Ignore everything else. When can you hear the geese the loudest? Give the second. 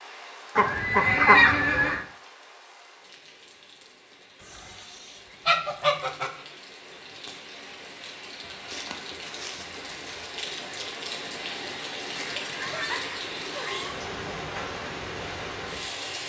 1 s.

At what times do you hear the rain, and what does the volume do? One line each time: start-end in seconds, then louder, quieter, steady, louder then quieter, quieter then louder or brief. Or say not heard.
0.0-16.2 louder.